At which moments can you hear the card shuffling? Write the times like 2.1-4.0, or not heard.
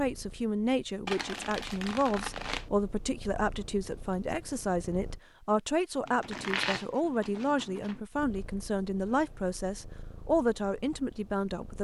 1.1-2.6, 6.0-8.0.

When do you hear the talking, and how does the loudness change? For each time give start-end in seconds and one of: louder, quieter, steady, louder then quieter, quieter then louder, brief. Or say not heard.
0.0-11.7 steady.